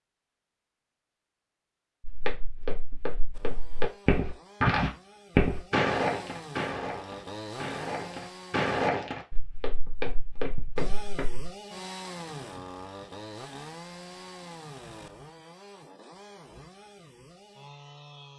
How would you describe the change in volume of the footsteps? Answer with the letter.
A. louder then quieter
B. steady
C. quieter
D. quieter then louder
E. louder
A.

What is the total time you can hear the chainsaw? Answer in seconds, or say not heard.
13 s.